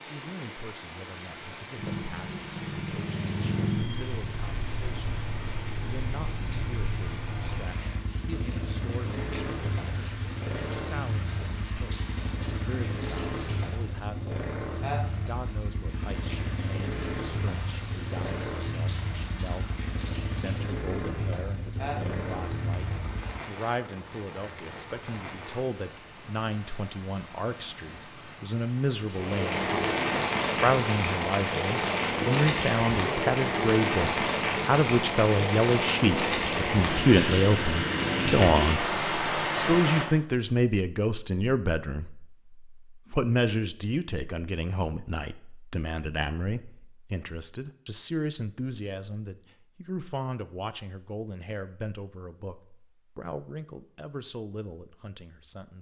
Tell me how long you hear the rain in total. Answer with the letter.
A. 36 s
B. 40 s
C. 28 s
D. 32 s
B.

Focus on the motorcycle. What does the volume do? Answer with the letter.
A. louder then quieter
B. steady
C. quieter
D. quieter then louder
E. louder
B.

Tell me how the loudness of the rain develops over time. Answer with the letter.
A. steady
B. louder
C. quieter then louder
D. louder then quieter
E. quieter
B.